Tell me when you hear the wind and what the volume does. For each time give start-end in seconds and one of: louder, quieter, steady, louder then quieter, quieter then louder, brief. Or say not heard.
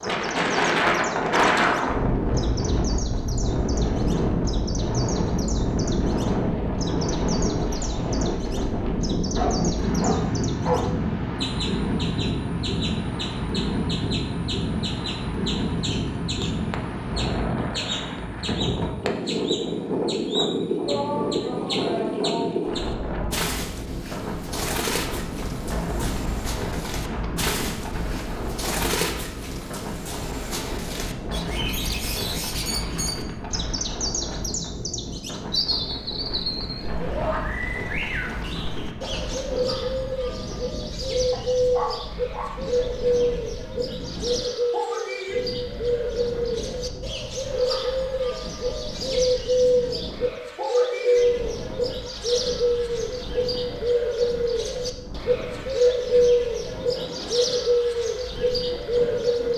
0.0-59.5 quieter.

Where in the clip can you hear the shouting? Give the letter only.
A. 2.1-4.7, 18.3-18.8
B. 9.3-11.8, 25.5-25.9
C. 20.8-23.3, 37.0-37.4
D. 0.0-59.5
C.